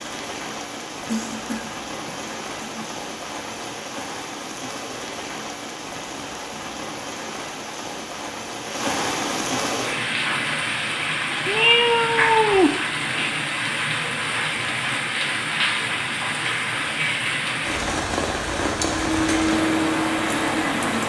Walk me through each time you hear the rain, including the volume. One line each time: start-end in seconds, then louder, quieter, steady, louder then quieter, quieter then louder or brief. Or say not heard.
0.0-21.0 louder.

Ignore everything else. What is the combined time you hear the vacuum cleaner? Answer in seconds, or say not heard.
2 s.